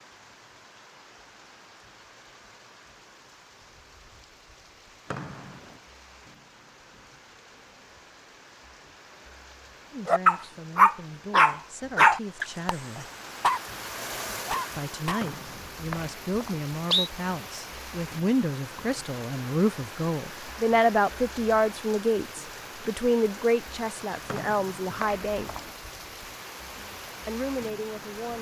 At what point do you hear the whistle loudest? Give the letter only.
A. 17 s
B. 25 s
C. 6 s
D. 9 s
A.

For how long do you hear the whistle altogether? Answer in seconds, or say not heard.
4 s.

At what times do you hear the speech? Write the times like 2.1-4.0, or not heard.
9.9-13.1, 14.8-25.5, 27.2-28.3.